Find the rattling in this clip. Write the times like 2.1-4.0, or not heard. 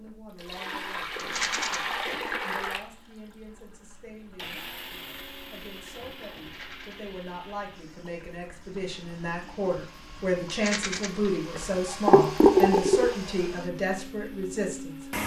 1.1-1.8, 6.3-7.0, 10.4-11.1.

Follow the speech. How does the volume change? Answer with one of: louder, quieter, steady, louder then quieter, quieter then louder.
louder.